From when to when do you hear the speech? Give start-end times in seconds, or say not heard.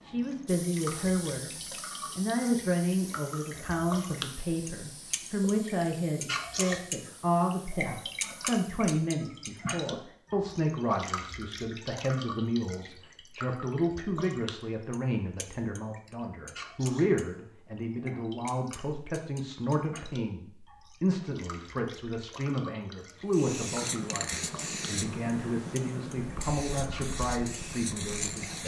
0.0-1.5, 2.1-28.6.